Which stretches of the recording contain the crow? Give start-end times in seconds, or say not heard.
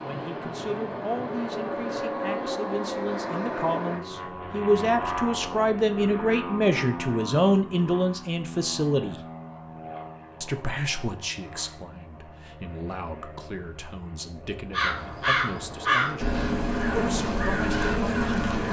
14.7-18.6.